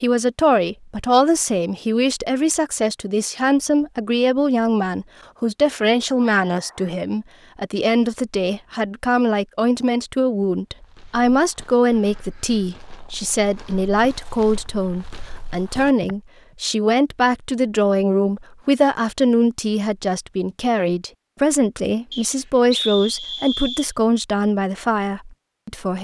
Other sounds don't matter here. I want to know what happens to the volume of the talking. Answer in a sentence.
The volume of the talking stays about the same.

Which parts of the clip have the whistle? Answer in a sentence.
The whistle can be heard from 6.2 to 7.0 s and from 22.1 to 23.9 s.